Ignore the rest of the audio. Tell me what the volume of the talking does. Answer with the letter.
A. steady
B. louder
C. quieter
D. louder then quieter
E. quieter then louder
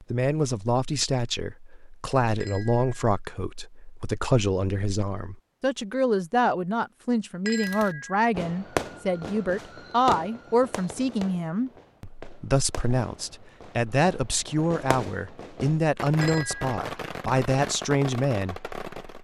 A.